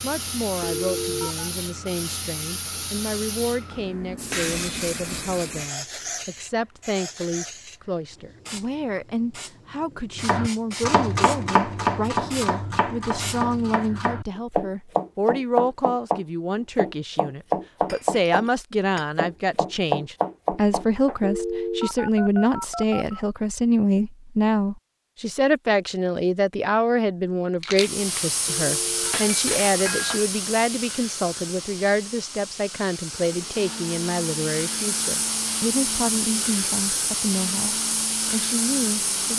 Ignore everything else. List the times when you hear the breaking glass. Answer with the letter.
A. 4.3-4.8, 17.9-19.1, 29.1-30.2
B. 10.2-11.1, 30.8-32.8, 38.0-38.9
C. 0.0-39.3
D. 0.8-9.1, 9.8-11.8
A.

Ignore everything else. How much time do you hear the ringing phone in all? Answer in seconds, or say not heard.
4 s.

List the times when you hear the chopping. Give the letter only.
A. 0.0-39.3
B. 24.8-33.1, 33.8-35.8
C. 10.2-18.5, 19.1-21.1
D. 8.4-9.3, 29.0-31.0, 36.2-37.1
C.